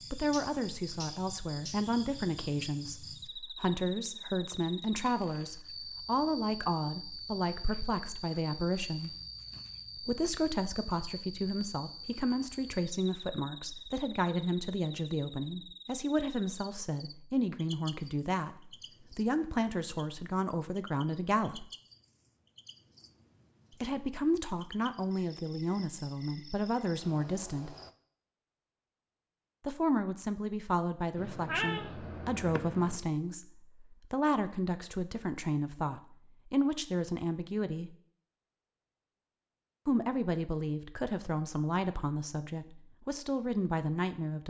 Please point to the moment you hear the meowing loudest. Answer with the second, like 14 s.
32 s.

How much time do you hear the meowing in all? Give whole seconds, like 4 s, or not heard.
2 s.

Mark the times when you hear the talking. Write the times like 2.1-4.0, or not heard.
0.1-9.2, 9.9-21.7, 23.8-27.8, 29.6-38.0, 39.9-44.4.